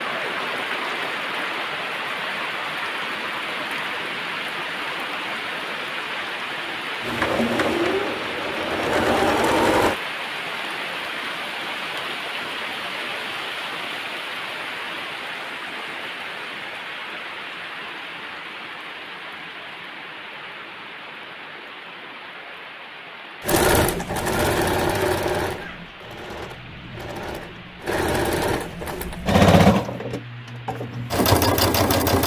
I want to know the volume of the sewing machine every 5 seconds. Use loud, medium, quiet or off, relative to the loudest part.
off, loud, off, off, loud, loud, loud.